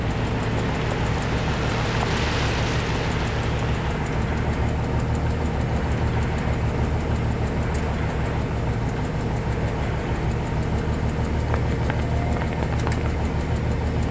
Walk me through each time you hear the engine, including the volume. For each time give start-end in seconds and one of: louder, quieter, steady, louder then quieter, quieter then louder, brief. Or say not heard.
0.0-14.0 steady.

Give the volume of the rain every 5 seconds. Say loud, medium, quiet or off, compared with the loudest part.
loud, medium, medium.